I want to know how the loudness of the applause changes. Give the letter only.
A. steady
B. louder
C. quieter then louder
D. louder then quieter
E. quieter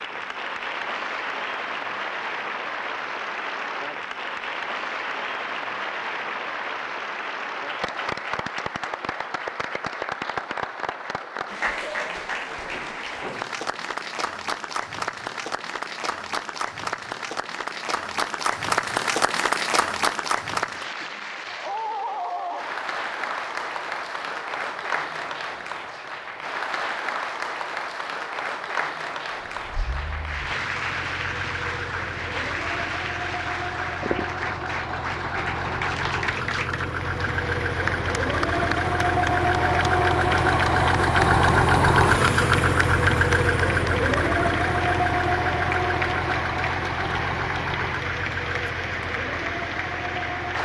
A.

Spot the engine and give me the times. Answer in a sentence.
The engine can be heard from 29.6 to 50.5 s.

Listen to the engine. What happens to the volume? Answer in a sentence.
The volume of the engine goes up, then down.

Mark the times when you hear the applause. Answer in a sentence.
The applause can be heard from 0.0 to 50.5 s.